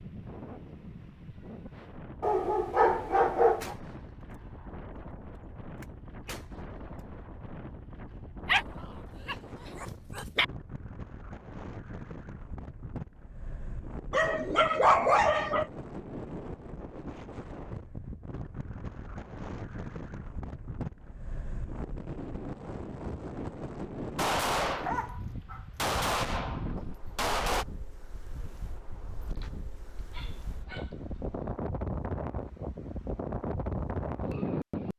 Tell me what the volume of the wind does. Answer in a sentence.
The volume of the wind goes up.